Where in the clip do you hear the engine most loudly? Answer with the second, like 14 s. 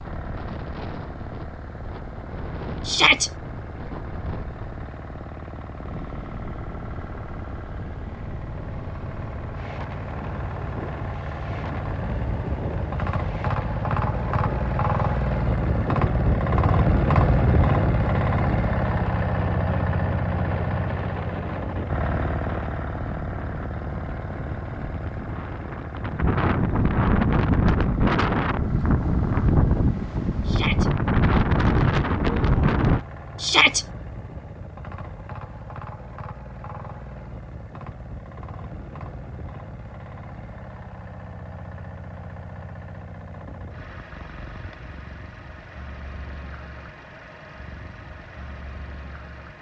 17 s.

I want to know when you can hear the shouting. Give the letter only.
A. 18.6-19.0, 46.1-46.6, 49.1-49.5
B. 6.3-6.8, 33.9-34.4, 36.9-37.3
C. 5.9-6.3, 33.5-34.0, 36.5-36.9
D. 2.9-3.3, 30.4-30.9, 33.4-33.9
D.